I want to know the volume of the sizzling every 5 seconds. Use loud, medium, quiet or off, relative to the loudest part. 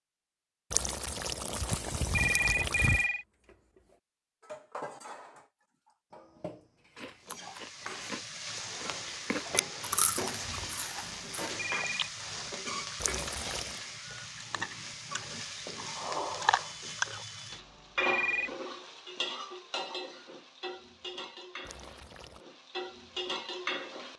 off, loud, loud, loud, loud.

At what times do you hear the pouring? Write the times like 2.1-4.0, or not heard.
0.7-3.0, 12.9-13.8, 21.6-22.4.